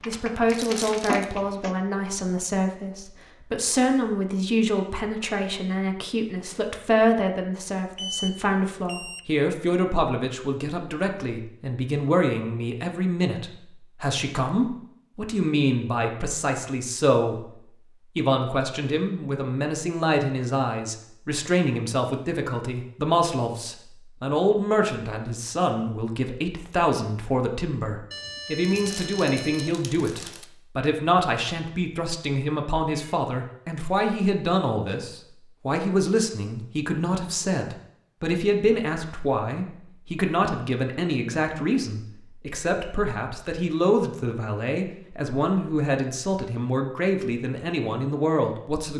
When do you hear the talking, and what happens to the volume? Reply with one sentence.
You can hear the talking from 0.1 to 17.5 s, at a steady volume; and from 18.1 to 48.9 s, at a steady volume.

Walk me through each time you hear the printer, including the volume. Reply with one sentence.
The printer can't be heard in this clip.